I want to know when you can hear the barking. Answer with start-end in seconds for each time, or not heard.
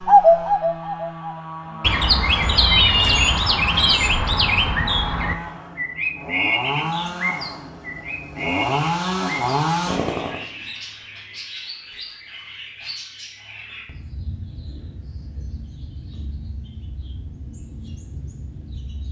not heard.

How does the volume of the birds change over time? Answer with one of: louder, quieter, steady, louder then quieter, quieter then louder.
quieter.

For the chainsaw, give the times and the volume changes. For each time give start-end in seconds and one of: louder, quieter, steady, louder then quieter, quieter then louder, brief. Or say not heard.
0.0-10.4 louder.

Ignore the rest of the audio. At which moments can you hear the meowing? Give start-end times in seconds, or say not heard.
2.5-4.0.